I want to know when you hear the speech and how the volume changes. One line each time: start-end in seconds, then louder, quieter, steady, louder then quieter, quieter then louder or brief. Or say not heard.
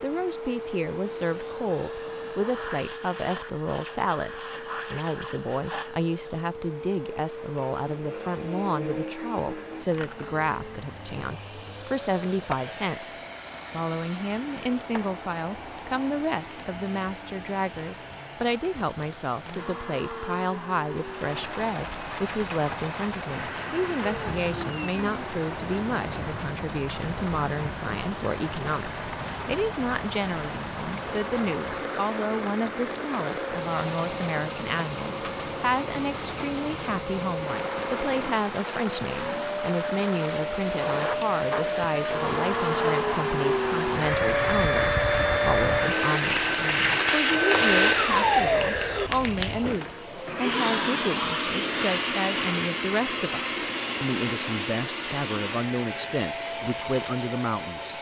0.0-57.9 steady.